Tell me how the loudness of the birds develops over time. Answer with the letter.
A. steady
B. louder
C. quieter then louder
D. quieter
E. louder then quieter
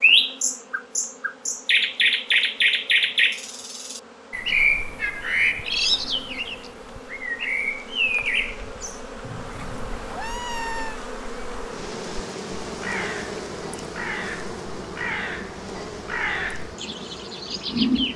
C.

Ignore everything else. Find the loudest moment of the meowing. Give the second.
11 s.